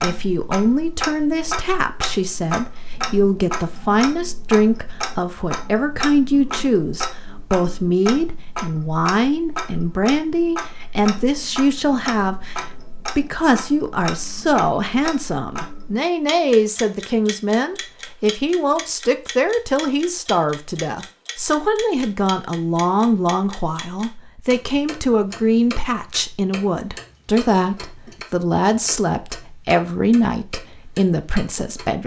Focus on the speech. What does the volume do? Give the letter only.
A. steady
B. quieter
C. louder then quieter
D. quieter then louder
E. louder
A.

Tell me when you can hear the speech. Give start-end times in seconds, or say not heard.
0.0-32.0.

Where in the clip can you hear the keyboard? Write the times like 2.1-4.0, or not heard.
not heard.